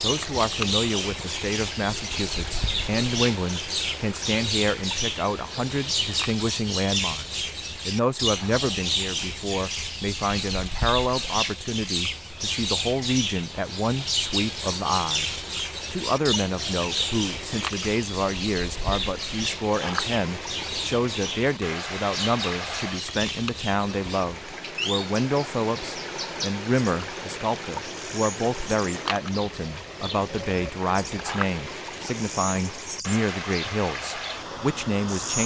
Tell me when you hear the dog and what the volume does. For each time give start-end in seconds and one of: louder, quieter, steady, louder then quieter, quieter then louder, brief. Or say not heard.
not heard.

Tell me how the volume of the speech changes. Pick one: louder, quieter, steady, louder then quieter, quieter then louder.
steady.